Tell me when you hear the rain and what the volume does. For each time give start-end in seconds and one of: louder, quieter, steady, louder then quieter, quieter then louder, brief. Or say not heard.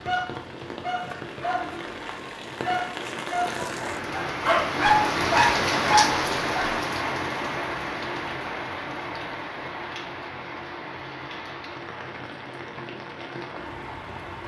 0.0-14.4 louder then quieter.